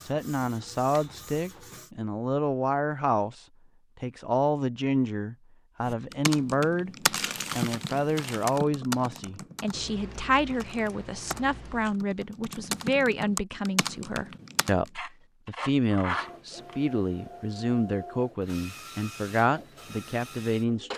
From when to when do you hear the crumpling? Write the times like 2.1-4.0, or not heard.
7.2-8.6.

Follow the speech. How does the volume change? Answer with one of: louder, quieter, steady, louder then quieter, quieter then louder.
steady.